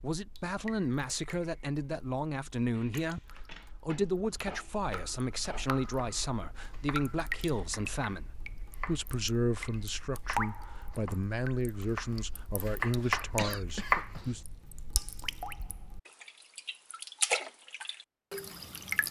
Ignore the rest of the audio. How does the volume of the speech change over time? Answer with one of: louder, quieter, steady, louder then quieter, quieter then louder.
steady.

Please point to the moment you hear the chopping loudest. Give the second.
14 s.